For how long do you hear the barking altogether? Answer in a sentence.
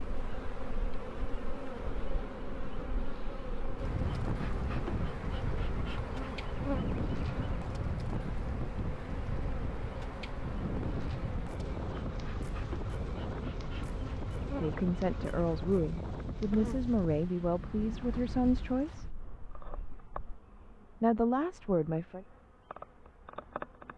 You can't hear the barking here.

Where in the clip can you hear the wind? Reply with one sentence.
The wind can be heard from 0.1 to 20.4 s.